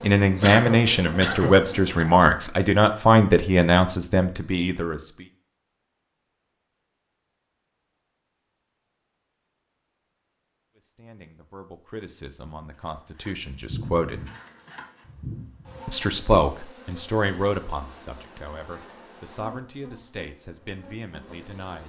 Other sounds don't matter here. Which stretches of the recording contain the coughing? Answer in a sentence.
You can hear the coughing from 0.4 to 2.1 s.